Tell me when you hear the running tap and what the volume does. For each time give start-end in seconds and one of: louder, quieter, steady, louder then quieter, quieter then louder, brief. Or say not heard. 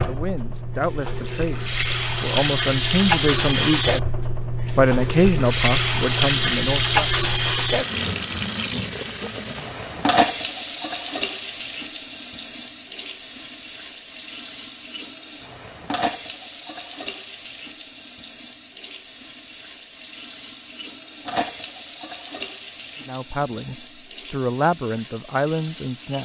0.0-26.1 quieter.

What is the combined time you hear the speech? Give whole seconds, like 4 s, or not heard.
9 s.